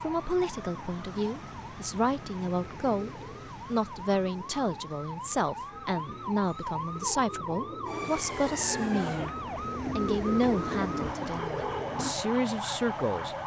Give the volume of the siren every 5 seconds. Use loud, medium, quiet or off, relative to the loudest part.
medium, loud, loud.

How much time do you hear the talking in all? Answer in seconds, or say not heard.
13 s.